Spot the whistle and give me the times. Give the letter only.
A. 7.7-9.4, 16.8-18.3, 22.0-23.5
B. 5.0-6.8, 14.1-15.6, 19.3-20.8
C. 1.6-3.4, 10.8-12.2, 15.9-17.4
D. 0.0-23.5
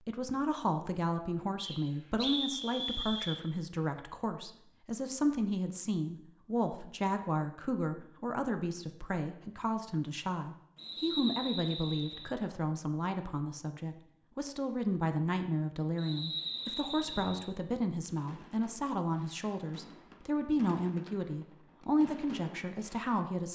C.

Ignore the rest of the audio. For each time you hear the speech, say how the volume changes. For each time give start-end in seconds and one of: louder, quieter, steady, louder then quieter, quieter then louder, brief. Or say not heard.
0.0-23.5 steady.